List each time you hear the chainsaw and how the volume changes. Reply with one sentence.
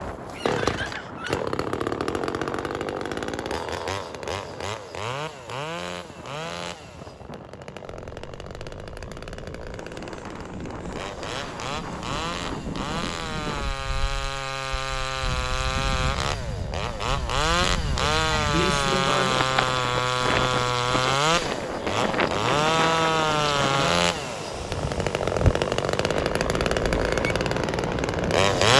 You can hear the chainsaw from 0.0 to 28.7 s, getting quieter then louder.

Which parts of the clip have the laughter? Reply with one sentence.
The laughter can be heard from 0.3 to 1.4 s and from 18.0 to 19.5 s.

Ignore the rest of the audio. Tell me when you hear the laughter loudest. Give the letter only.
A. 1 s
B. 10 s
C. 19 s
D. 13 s
C.